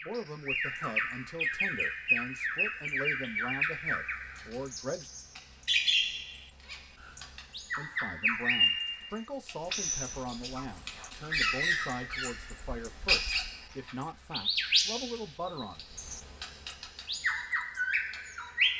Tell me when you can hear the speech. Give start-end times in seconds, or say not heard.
0.0-5.1, 7.8-15.9.